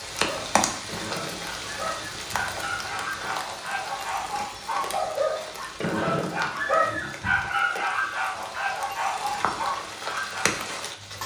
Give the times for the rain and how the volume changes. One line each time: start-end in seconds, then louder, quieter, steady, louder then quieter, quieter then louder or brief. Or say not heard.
0.0-11.2 quieter then louder.